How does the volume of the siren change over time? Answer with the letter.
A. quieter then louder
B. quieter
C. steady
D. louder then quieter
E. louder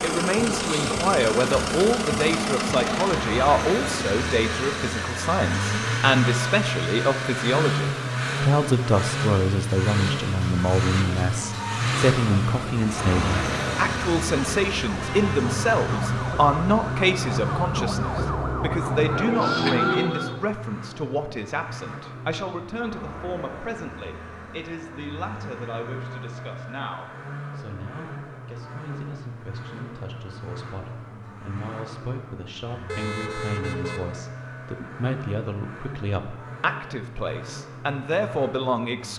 E.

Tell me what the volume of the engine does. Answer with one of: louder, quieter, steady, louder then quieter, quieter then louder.
quieter.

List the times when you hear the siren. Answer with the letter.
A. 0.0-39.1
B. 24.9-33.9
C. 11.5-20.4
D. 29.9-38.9
C.